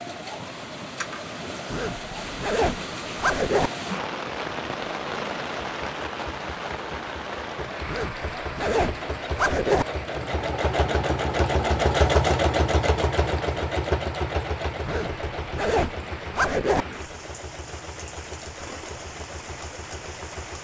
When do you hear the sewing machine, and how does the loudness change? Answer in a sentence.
The sewing machine can be heard from 0.0 to 20.5 s, getting louder then quieter.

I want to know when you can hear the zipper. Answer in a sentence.
The zipper can be heard from 1.7 to 3.7 s, from 7.8 to 9.8 s and from 14.8 to 16.9 s.